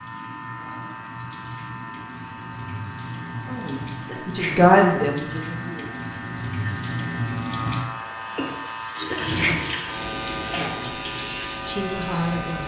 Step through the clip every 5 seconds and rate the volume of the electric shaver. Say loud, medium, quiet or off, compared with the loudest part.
medium, loud, loud.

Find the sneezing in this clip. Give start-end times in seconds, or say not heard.
4.0-4.7, 9.1-9.7.